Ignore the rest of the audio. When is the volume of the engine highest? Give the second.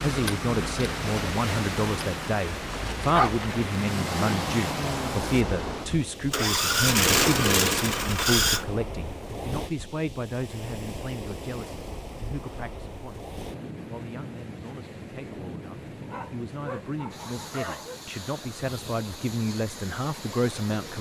7 s.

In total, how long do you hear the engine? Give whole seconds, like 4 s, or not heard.
9 s.